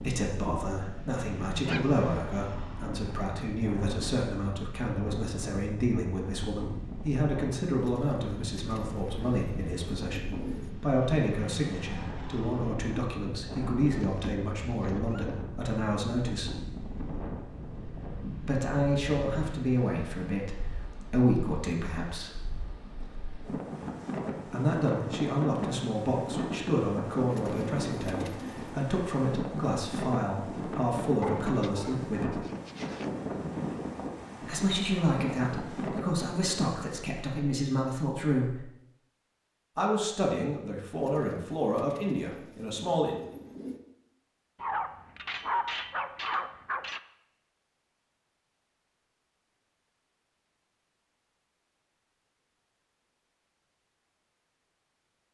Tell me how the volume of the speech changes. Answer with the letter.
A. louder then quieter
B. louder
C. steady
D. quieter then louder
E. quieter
C.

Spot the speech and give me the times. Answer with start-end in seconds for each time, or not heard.
0.0-16.6, 18.2-22.4, 24.4-32.4, 34.4-38.6, 39.8-43.1.